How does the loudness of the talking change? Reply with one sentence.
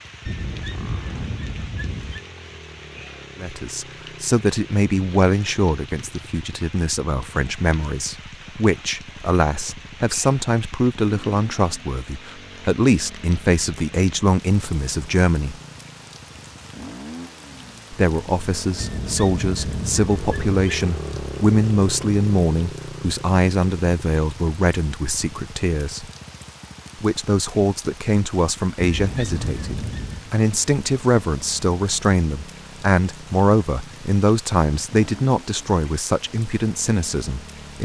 The loudness of the talking stays about the same.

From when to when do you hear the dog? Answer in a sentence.
The dog can be heard from 0.2 to 2.2 s, from 18.8 to 20.6 s and from 28.8 to 30.4 s.